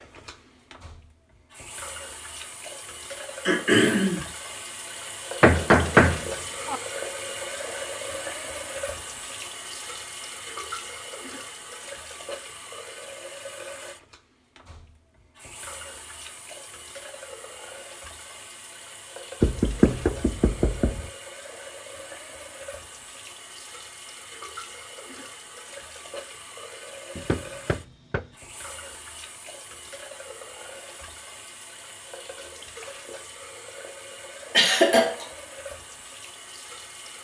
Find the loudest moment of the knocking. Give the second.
6 s.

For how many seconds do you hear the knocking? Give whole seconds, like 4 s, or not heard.
4 s.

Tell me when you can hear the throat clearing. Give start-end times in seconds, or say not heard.
3.5-4.2, 34.5-35.2.